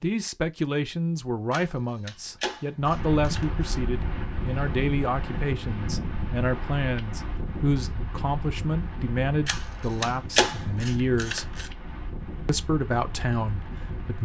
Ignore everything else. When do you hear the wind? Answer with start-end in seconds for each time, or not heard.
2.8-14.1.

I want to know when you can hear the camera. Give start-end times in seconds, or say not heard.
1.5-3.6, 9.4-11.7.